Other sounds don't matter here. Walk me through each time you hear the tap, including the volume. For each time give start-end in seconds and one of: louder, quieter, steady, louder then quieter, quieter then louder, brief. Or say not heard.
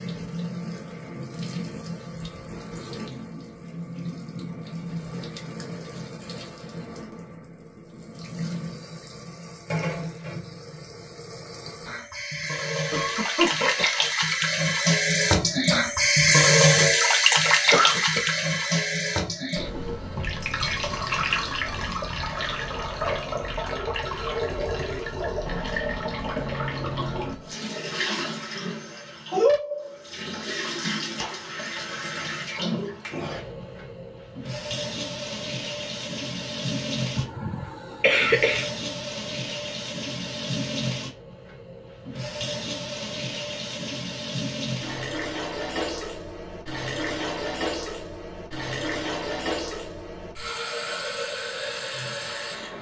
0.0-52.7 louder then quieter.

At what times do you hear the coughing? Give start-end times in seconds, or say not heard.
12.9-14.2, 17.7-18.3, 37.1-38.6.